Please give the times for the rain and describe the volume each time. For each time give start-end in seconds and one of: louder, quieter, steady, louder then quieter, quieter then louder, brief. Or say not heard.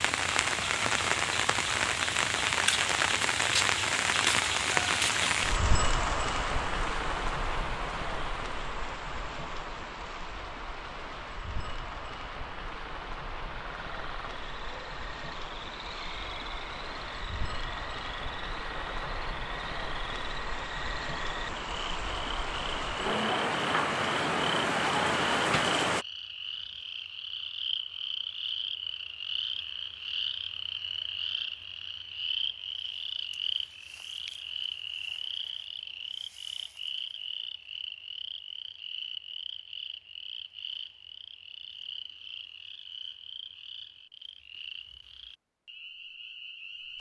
0.0-26.1 quieter then louder.